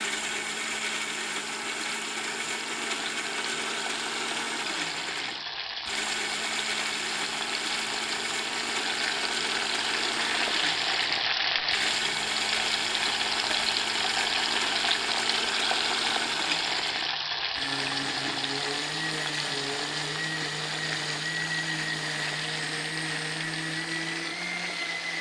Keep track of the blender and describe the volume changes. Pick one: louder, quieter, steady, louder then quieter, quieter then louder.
steady.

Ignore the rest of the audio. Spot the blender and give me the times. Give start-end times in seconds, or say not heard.
0.0-25.1.